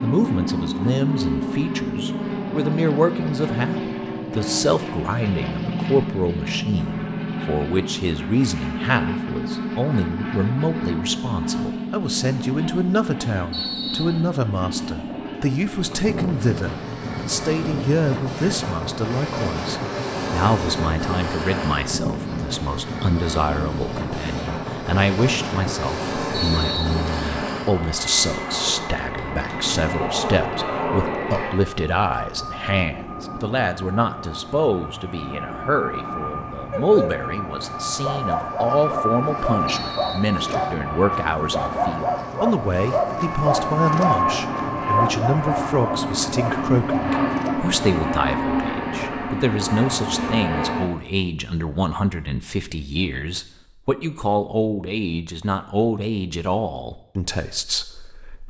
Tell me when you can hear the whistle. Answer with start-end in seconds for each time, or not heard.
13.5-14.2, 26.3-27.4, 39.6-40.8.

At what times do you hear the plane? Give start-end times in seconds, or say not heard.
0.0-50.9.